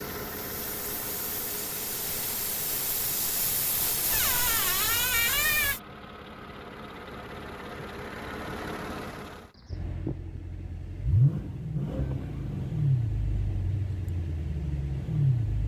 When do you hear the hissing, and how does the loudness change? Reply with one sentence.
You can hear the hissing from 0.0 to 5.8 s, getting louder.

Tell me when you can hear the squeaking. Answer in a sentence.
The squeaking can be heard from 4.1 to 5.8 s and from 11.9 to 12.3 s.